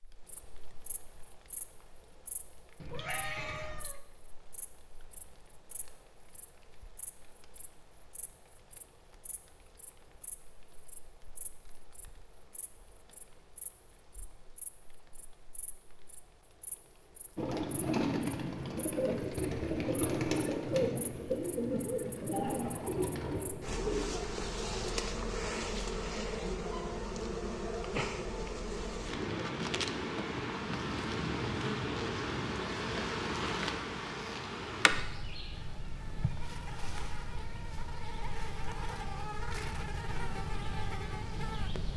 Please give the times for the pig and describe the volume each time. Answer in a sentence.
You can't hear the pig here.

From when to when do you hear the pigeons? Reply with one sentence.
The pigeons can be heard from 17.4 to 24.1 s.